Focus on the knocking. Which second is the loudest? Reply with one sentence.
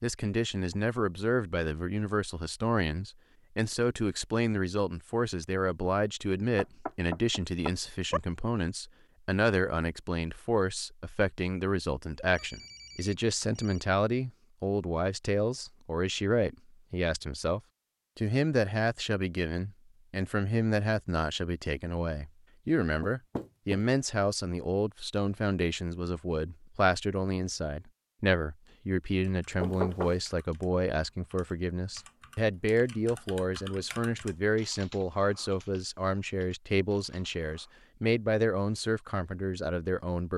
The volume of the knocking peaks at 30 seconds.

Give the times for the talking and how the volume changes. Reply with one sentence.
The talking can be heard from 0.0 to 40.3 s, at a steady volume.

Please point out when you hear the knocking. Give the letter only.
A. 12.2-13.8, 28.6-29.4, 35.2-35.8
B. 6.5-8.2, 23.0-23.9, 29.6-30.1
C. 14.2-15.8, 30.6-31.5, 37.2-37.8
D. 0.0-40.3
B.